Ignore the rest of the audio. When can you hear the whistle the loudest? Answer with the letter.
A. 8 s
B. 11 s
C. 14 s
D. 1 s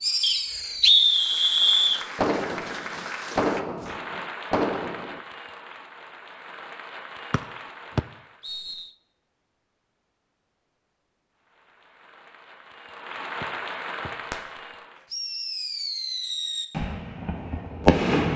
D.